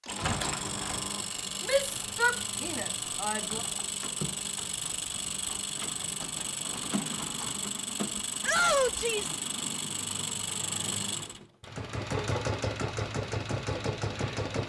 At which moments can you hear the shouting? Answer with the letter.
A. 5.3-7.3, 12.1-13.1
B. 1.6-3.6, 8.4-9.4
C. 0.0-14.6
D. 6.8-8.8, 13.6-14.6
B.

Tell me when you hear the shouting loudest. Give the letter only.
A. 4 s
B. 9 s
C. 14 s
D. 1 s
B.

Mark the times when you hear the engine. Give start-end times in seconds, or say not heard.
0.0-14.6.